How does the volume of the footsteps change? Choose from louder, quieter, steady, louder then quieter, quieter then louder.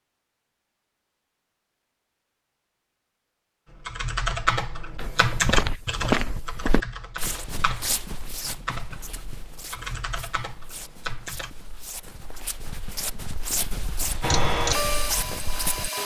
quieter then louder.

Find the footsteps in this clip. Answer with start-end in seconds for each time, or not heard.
5.0-15.9.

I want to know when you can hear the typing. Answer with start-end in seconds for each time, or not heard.
3.6-11.5.